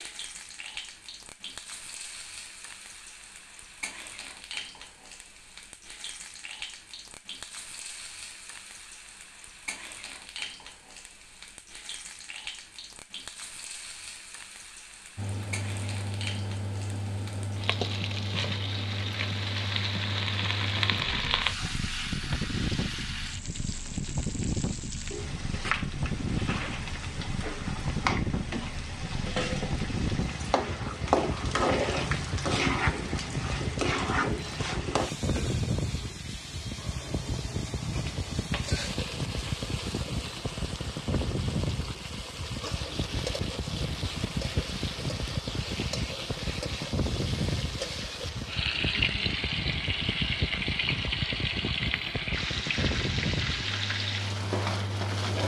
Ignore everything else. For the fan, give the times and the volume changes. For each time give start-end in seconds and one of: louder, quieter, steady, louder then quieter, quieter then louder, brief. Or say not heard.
15.2-55.4 steady.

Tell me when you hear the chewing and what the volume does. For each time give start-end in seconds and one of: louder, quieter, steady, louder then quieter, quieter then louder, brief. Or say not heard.
not heard.